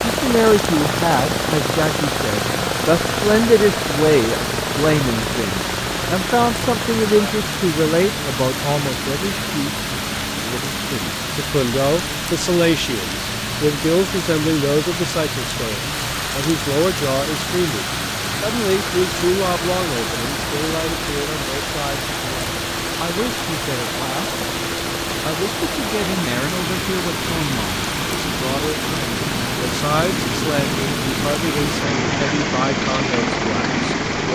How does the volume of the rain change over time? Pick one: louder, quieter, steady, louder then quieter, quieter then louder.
steady.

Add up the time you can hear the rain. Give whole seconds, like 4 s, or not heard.
34 s.